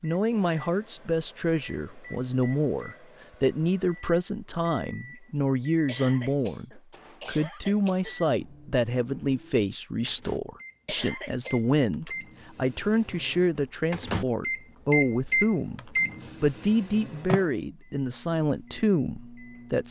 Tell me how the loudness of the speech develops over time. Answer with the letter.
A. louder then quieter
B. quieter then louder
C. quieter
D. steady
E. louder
D.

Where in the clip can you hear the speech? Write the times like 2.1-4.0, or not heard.
0.0-19.8.